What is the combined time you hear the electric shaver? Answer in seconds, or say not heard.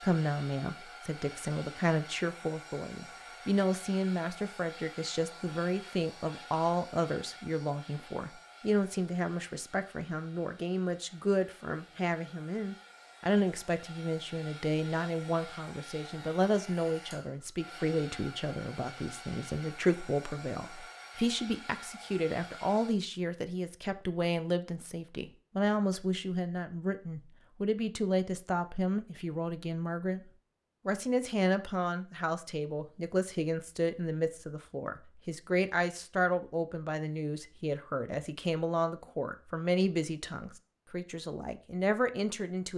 not heard.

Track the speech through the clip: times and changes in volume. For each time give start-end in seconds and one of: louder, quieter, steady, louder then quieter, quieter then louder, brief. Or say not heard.
0.0-30.2 steady
30.9-42.7 steady.